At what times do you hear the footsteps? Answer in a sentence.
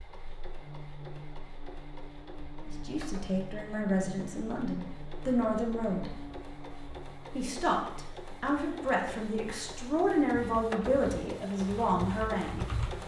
The footsteps can't be heard in this clip.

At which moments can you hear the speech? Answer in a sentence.
The speech can be heard from 2.6 to 6.1 s and from 7.3 to 12.7 s.